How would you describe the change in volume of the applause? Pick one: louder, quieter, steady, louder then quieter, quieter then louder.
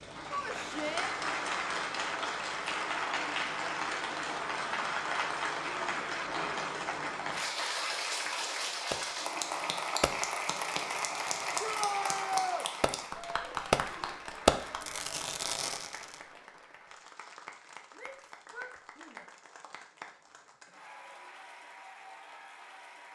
quieter.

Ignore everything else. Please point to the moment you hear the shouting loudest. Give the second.
12 s.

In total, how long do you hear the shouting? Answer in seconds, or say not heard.
3 s.